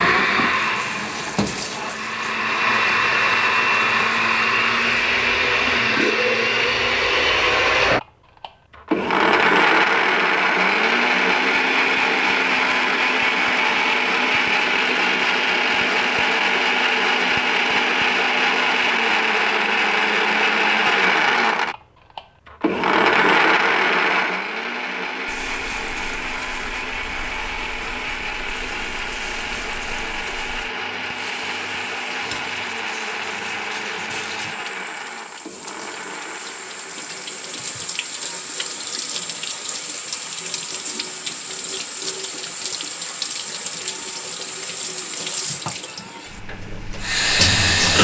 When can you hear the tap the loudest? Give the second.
48 s.